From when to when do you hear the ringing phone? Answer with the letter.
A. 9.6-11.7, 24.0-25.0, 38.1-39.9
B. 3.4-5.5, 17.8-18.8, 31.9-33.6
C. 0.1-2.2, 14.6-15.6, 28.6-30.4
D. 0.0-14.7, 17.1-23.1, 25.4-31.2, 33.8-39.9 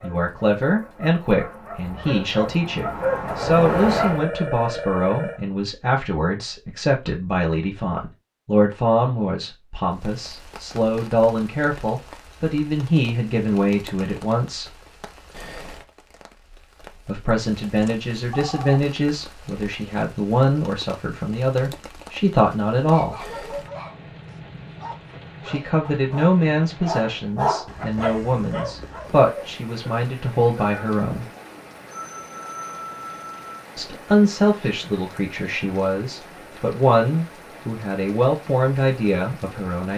B.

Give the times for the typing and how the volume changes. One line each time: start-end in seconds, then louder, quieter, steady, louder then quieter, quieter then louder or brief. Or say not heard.
not heard.